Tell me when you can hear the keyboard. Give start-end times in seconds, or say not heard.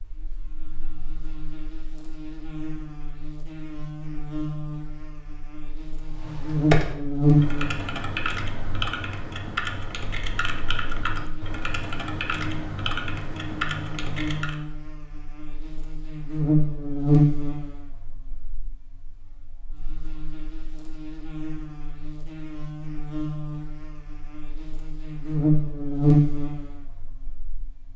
6.0-14.6.